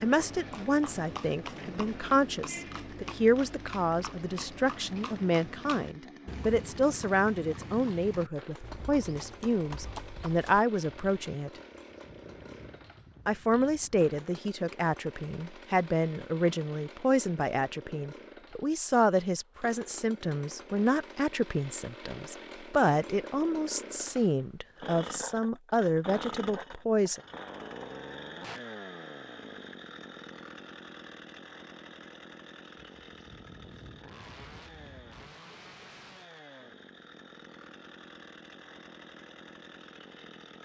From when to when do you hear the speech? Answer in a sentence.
The speech can be heard from 0.0 to 11.5 s and from 13.2 to 27.2 s.